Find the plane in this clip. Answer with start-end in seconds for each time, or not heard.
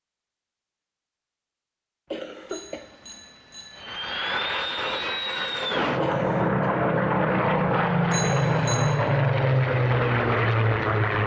3.8-11.2.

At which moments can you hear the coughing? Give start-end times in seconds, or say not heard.
2.1-3.0, 6.0-6.7.